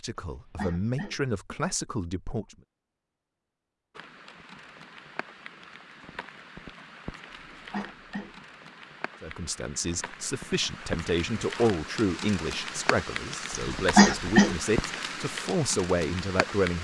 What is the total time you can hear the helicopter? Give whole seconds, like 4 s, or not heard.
not heard.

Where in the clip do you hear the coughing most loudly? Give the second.
14 s.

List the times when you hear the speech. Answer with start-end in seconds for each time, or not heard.
0.0-2.5, 9.2-16.7.